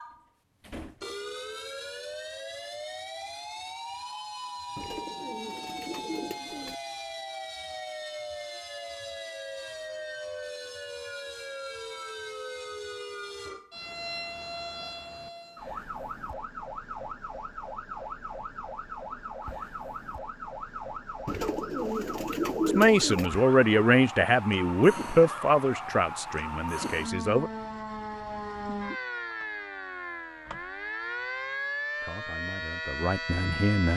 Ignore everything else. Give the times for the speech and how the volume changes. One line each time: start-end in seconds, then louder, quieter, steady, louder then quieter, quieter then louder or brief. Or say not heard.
22.6-27.5 quieter
32.0-33.9 brief.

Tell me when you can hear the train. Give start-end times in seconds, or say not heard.
not heard.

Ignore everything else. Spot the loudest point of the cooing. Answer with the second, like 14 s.
23 s.